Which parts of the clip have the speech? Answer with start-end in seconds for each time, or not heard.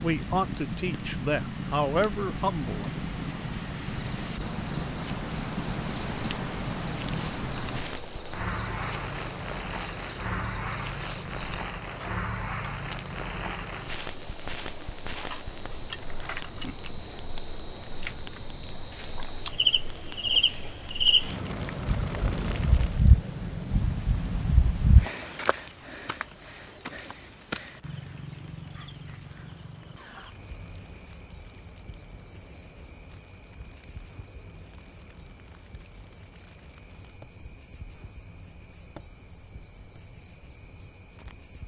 0.0-2.9.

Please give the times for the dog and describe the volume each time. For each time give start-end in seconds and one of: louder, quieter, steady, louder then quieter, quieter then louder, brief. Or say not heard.
not heard.